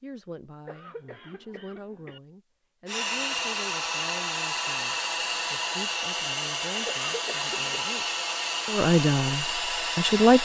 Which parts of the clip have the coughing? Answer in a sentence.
You can hear the coughing from 0.7 to 2.2 s and from 6.8 to 7.8 s.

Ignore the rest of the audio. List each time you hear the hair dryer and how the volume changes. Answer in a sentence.
You can hear the hair dryer from 2.9 to 10.4 s, at a steady volume.